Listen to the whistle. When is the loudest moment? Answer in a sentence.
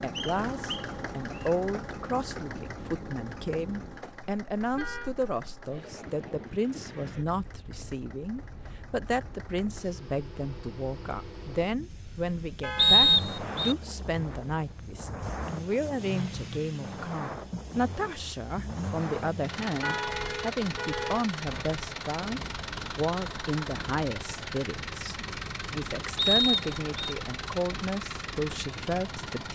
The loudest moment of the whistle is at 13 seconds.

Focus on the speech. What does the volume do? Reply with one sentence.
The loudness of the speech stays about the same.